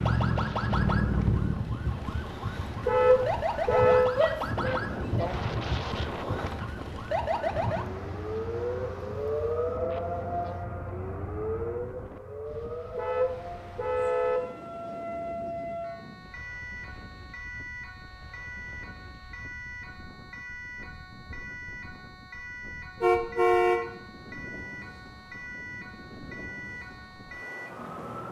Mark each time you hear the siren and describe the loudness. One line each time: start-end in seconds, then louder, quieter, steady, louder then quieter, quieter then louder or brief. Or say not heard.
0.0-28.2 quieter.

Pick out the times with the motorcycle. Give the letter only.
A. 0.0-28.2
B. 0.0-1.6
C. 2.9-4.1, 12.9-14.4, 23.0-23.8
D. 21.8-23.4
B.